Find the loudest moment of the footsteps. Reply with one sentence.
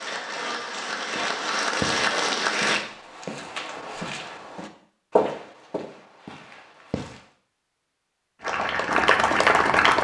The loudest moment of the footsteps is at 5 seconds.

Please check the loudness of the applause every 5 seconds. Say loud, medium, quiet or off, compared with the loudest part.
medium, loud.